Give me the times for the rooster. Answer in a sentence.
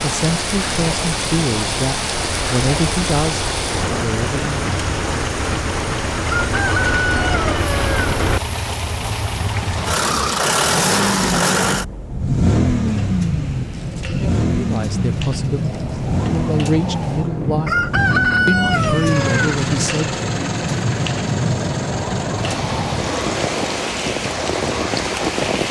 You can hear the rooster from 6.2 to 8.1 s and from 17.6 to 19.6 s.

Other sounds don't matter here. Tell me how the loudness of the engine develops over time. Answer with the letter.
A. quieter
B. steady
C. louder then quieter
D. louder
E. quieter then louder
C.